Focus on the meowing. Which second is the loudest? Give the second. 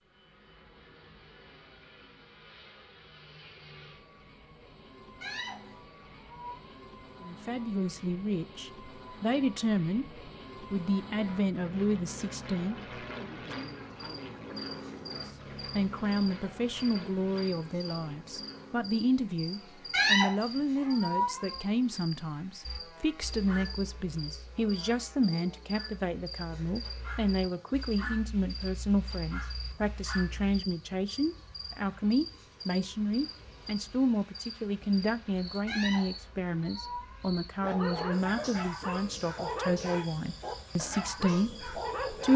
20 s.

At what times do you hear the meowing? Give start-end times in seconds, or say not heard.
5.2-6.7, 19.9-21.6, 35.6-37.4.